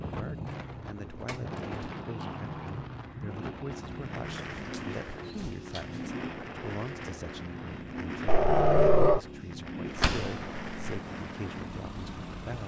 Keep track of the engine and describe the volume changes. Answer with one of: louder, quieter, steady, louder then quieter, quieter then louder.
steady.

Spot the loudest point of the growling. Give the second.
9 s.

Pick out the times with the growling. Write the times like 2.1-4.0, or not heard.
2.1-3.4, 8.2-9.2.